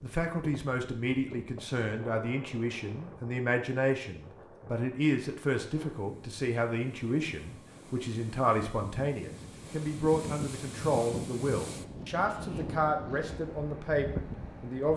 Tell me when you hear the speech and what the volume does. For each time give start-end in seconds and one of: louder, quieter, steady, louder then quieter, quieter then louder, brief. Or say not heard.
0.0-14.9 steady.